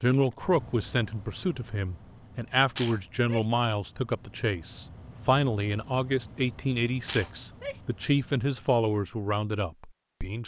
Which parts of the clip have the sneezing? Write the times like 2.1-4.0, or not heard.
2.8-3.5, 7.0-7.8.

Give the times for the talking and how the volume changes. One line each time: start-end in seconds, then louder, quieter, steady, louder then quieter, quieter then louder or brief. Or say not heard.
0.0-10.4 steady.